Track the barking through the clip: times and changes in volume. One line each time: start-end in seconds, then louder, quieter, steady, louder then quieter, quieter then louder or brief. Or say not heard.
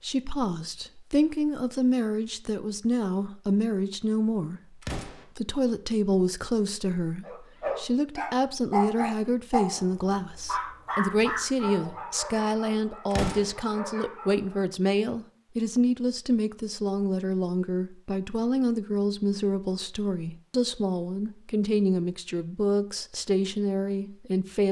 7.2-14.7 quieter.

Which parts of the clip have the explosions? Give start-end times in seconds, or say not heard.
4.8-5.2, 13.1-13.6.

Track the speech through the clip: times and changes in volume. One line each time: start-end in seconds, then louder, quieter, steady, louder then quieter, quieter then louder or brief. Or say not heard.
0.0-24.6 steady.